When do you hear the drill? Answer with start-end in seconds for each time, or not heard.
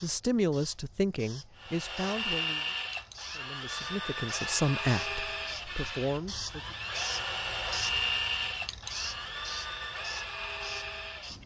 1.6-11.4.